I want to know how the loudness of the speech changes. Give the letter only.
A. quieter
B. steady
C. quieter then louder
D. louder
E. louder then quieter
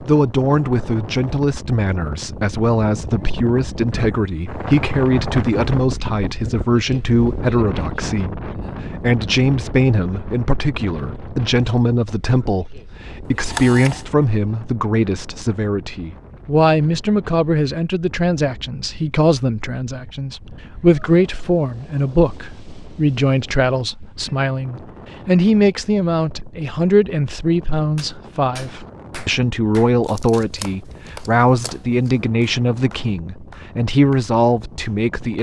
B.